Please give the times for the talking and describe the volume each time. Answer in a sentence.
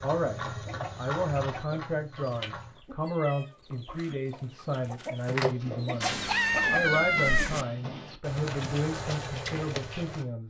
You can hear the talking from 0.0 to 10.4 s, at a steady volume.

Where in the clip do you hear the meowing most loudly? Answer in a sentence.
The volume of the meowing peaks at 7 seconds.